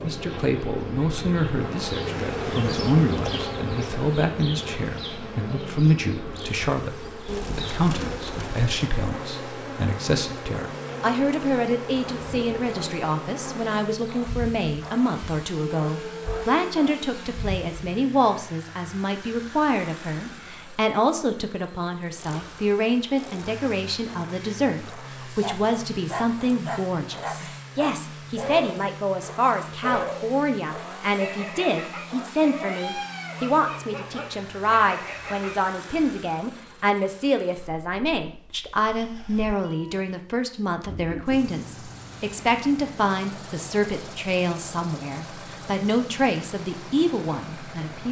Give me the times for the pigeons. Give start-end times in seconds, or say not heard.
7.2-8.7.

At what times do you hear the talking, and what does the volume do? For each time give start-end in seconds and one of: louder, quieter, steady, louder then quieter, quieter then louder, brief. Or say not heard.
0.0-48.0 steady.